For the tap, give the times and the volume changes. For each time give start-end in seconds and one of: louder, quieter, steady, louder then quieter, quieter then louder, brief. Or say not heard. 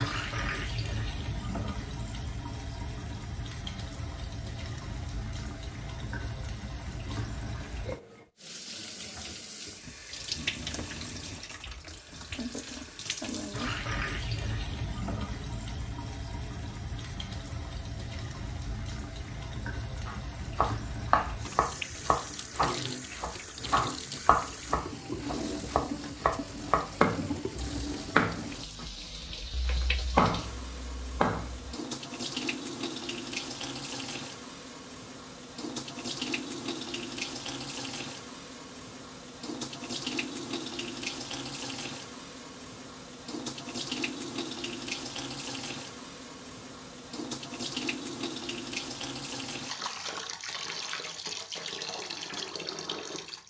0.0-53.4 steady.